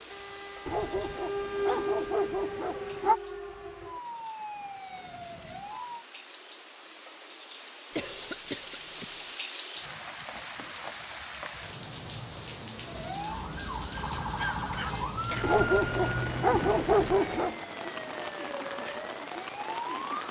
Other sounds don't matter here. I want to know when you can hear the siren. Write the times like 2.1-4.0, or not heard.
0.0-6.0, 12.8-20.2.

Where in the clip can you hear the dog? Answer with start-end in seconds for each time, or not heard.
0.7-3.2, 15.4-17.6.